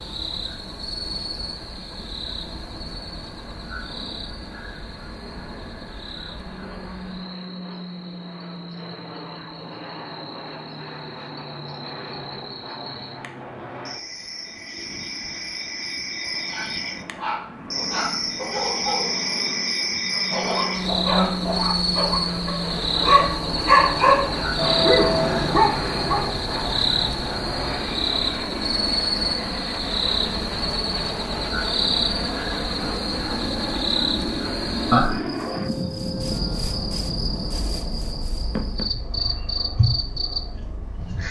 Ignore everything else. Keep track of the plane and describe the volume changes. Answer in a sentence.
The loudness of the plane goes up.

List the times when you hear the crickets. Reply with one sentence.
You can hear the crickets from 0.0 to 41.2 s.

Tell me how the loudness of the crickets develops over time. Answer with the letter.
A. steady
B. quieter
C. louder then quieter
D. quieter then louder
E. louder
E.